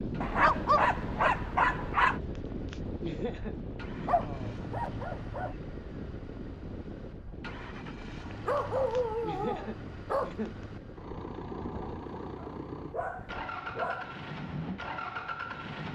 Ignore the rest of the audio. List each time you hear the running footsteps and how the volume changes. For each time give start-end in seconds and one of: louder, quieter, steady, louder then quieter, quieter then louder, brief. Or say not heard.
not heard.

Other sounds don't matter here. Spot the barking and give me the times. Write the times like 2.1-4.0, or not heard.
0.2-2.2, 4.0-5.5, 8.4-10.3, 12.3-14.2.